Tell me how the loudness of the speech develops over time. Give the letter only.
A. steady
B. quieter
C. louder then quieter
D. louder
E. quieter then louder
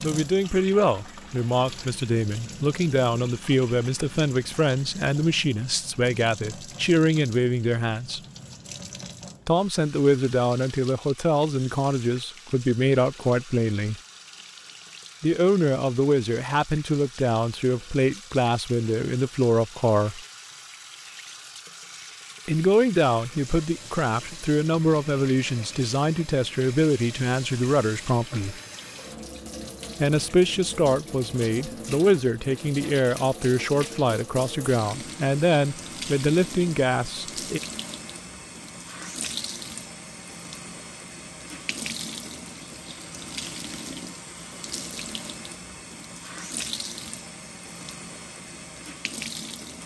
A.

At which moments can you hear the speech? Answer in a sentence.
You can hear the speech from 0.0 to 8.2 s, from 9.4 to 13.9 s, from 15.2 to 20.2 s, from 22.4 to 28.6 s and from 30.0 to 37.6 s.